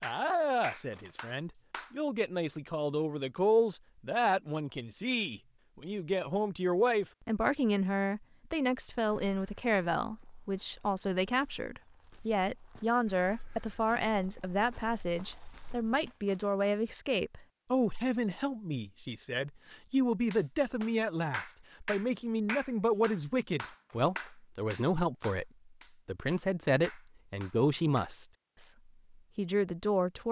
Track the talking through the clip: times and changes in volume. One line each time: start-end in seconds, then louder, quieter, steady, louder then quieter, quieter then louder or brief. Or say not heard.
0.0-30.2 steady.